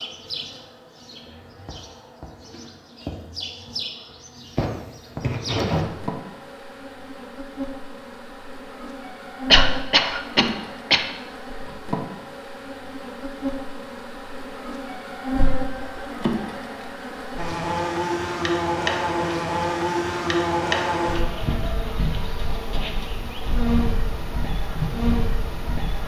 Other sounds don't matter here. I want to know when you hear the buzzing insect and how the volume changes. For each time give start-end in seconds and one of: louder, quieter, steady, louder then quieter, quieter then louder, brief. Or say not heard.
0.0-26.0 louder.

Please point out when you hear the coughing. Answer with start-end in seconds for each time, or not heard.
9.5-11.1.